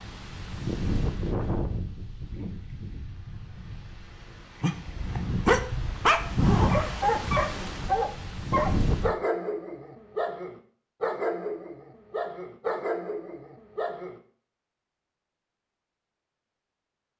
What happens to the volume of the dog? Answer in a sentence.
The loudness of the dog goes down.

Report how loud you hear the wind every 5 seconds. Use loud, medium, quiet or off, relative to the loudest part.
medium, loud, off, off.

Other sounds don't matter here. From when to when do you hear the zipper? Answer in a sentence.
The zipper can be heard from 6.3 to 7.7 s.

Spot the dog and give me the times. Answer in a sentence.
The dog can be heard from 4.6 to 14.2 s.